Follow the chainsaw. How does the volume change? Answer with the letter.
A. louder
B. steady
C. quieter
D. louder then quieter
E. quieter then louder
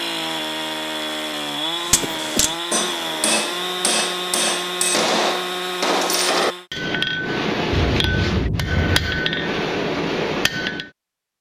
B.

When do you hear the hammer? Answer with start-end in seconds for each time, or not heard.
1.8-10.9.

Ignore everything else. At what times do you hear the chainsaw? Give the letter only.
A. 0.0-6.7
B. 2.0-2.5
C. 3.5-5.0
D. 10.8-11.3
A.